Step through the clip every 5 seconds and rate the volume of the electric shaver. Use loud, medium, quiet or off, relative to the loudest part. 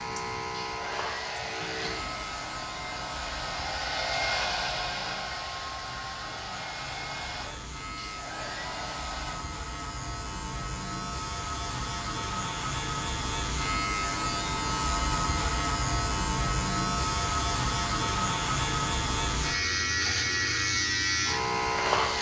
medium, quiet, medium, loud, loud.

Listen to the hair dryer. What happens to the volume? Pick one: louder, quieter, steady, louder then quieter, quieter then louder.
louder then quieter.